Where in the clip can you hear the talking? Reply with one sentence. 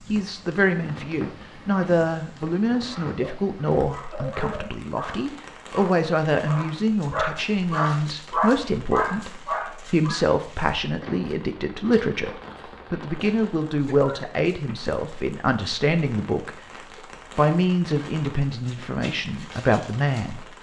The talking can be heard from 0.1 to 16.6 s and from 17.4 to 20.4 s.